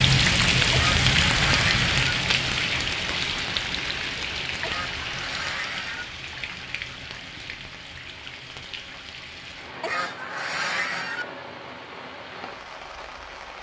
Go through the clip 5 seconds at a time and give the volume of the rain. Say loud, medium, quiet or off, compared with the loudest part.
loud, quiet, quiet.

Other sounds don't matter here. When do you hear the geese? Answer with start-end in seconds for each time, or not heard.
0.7-2.1, 4.6-6.0, 9.8-11.2.